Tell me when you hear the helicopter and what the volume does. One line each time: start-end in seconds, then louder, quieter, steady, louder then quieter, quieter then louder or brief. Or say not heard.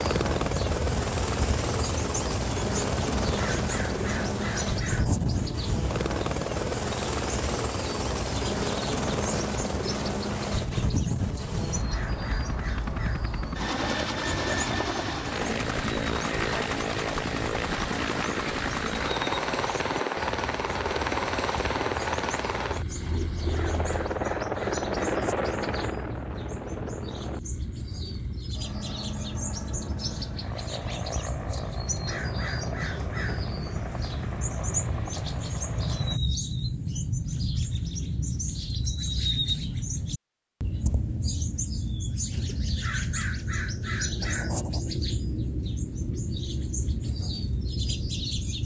0.0-36.2 quieter.